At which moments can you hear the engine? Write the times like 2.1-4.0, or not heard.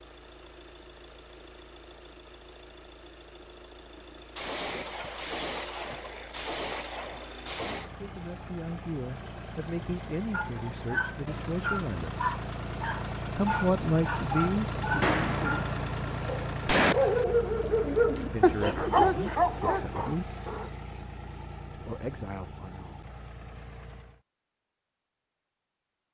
0.0-24.2.